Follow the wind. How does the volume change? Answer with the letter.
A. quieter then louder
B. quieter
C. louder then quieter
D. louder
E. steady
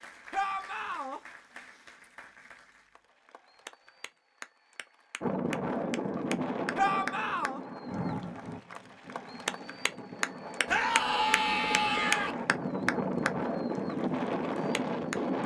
A.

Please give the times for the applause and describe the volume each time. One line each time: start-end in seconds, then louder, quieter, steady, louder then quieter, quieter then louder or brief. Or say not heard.
0.0-15.3 louder.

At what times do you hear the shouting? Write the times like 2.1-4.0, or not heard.
0.3-1.2, 6.8-7.6, 10.7-12.3.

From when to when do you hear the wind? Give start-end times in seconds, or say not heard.
5.2-15.4.